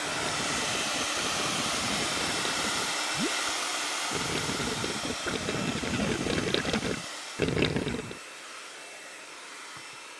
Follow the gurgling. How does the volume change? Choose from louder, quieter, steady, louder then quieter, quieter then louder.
louder.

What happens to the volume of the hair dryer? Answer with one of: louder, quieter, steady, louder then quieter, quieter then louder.
quieter.